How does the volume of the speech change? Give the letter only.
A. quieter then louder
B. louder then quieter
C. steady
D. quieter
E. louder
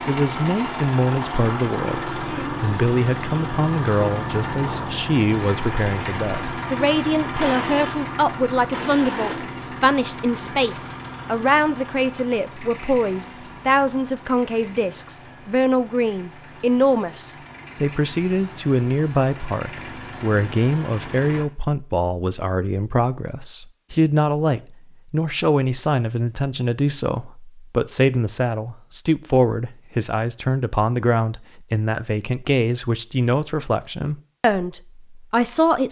C.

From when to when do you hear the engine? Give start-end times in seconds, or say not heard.
0.0-21.4.